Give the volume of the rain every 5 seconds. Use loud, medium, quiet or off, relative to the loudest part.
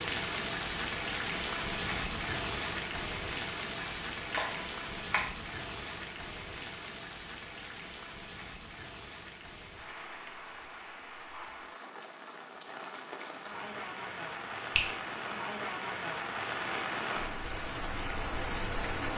loud, medium, medium, loud.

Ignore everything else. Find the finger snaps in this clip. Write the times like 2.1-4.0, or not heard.
3.8-5.2.